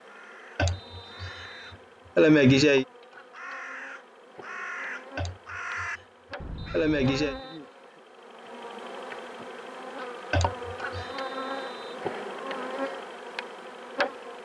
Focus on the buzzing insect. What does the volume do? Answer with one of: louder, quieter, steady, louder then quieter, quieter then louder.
louder.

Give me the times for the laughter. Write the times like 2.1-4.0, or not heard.
0.6-1.3, 2.1-2.9, 5.2-5.9, 6.7-7.3, 10.3-11.1.